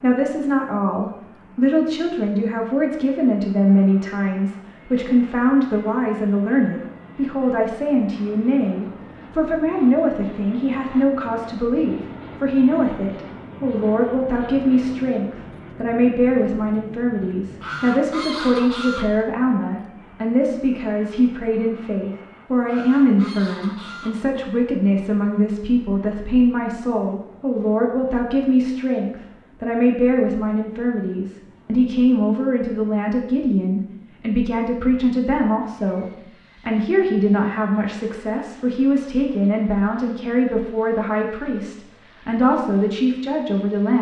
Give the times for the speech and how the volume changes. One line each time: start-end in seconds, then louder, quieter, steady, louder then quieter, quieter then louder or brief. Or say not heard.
0.0-43.9 steady.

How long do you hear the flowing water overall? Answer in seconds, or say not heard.
not heard.